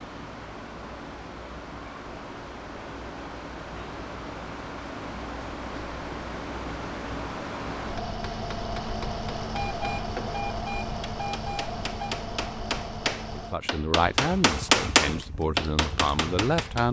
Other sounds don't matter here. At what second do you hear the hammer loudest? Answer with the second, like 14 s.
15 s.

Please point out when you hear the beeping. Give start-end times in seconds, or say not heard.
9.5-12.2.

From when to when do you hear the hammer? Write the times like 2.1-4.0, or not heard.
7.8-16.8.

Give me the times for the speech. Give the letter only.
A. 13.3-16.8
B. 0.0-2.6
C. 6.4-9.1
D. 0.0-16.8
A.